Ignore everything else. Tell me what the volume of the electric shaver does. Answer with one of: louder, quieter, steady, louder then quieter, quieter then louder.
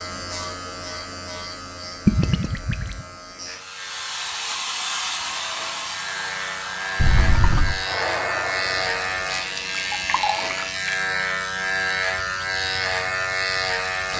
louder.